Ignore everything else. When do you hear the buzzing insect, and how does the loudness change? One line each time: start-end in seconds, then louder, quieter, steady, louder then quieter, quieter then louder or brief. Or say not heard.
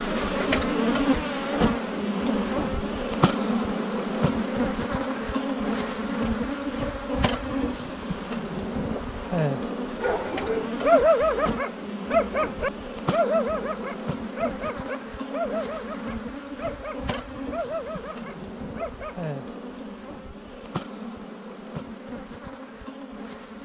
0.0-23.6 quieter.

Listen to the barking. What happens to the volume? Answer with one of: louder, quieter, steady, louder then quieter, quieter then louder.
quieter.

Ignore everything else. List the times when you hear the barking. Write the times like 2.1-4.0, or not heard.
9.9-19.1.